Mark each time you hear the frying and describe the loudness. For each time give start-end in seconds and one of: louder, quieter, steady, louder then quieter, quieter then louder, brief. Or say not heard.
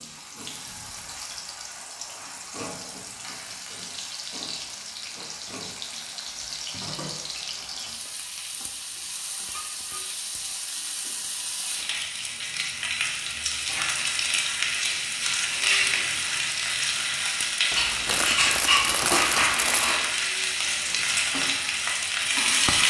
0.0-22.8 louder.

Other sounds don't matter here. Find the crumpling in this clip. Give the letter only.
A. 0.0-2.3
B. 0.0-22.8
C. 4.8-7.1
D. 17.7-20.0
D.